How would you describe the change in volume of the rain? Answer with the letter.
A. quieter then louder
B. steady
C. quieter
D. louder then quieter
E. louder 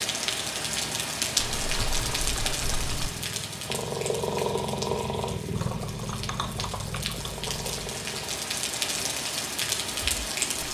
A.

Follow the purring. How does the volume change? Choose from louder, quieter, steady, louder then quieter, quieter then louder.
louder then quieter.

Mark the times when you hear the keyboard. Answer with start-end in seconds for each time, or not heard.
1.4-3.1, 5.5-7.9.